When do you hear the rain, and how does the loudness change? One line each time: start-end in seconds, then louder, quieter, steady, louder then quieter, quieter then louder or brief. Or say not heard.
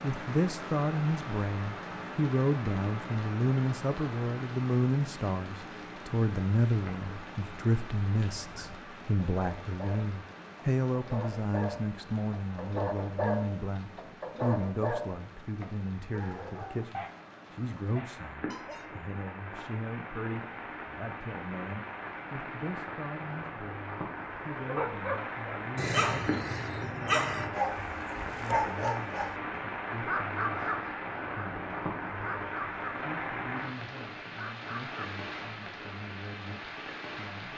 0.0-37.5 quieter then louder.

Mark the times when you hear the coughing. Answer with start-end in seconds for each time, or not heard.
not heard.